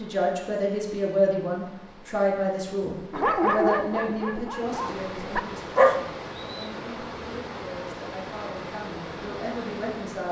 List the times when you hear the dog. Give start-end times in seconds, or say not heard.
3.1-6.7.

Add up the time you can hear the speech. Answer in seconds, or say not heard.
10 s.